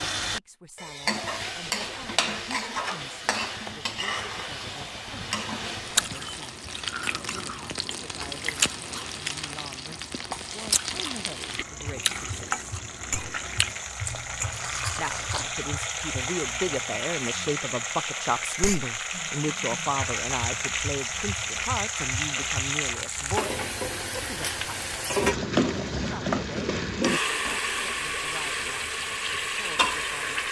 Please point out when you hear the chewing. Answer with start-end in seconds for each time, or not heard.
5.7-15.6.